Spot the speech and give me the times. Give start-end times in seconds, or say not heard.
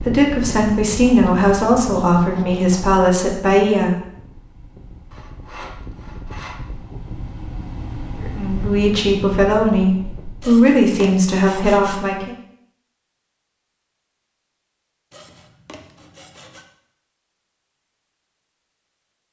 0.0-4.0, 8.2-12.3.